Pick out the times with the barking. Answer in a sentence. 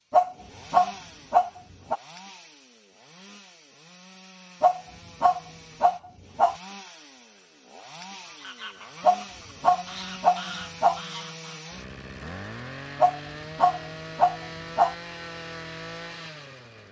You can hear the barking from 0.1 to 2.0 s, from 4.6 to 6.5 s, from 9.0 to 11.0 s and from 13.0 to 14.9 s.